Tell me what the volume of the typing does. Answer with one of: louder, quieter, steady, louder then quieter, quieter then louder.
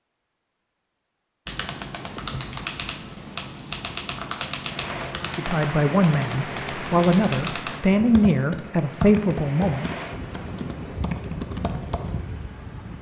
steady.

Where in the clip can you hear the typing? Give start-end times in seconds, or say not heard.
1.4-12.2.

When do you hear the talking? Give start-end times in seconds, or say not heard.
5.2-10.1.